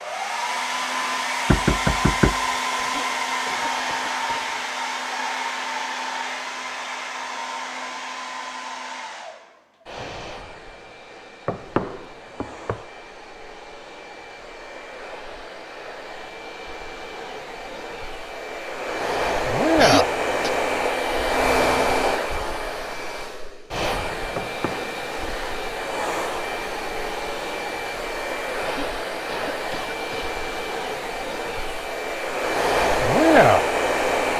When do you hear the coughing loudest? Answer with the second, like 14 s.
20 s.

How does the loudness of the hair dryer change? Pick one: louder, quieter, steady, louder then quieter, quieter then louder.
quieter then louder.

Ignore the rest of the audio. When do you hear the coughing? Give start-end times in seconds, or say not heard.
2.8-4.7, 19.8-20.5, 28.6-30.4.